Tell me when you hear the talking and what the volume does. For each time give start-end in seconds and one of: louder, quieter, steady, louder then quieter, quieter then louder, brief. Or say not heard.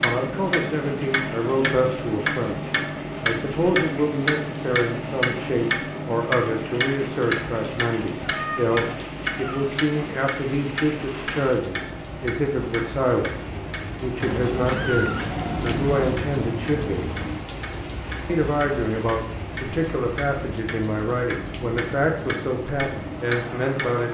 0.0-17.1 steady
18.2-24.1 steady.